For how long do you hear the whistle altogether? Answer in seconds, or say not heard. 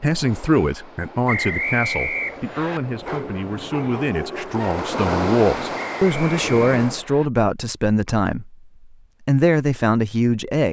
3 s.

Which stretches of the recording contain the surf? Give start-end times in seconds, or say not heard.
0.0-7.0.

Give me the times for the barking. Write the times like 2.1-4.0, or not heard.
3.0-4.8.